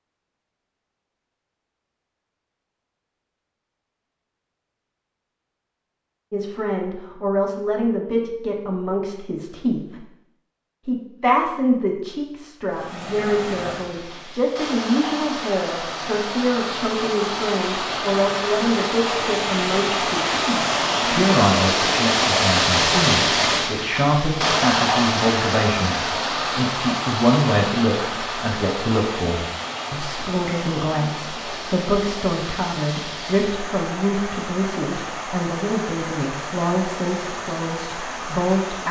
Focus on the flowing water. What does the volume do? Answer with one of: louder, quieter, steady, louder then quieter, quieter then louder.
louder then quieter.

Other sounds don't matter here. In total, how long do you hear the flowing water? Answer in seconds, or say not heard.
26 s.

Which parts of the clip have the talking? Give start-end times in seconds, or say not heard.
6.3-10.0, 10.8-38.8.